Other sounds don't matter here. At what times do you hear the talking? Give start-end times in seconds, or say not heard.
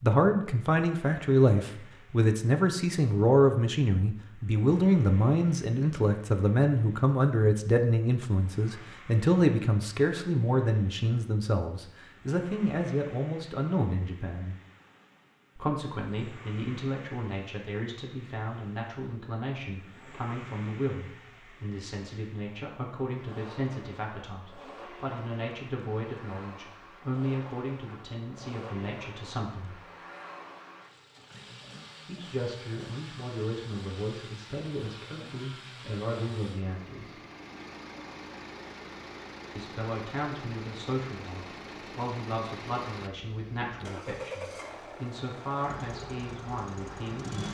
0.0-14.6, 15.6-29.8, 32.0-37.1, 39.5-47.4.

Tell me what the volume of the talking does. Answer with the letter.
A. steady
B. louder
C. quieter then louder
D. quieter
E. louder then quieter
D.